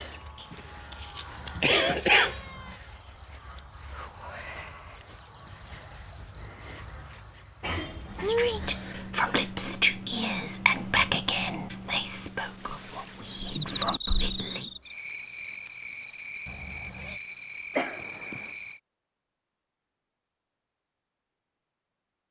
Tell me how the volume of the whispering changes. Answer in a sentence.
The volume of the whispering goes down.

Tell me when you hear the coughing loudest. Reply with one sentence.
The volume of the coughing peaks at 2 seconds.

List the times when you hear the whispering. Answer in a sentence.
The whispering can be heard from 8.1 to 14.7 s.